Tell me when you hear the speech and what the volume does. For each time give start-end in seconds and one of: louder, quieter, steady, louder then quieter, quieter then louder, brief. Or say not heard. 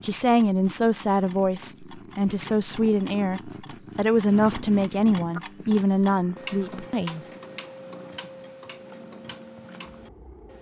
0.0-7.2 steady.